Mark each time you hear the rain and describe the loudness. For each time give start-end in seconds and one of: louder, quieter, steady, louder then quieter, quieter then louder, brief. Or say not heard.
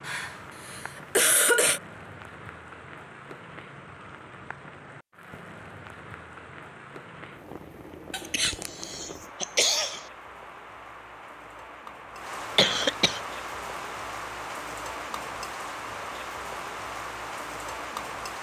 0.0-18.3 louder.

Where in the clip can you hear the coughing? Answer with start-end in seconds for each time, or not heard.
0.1-1.8, 8.1-10.1, 12.6-13.2.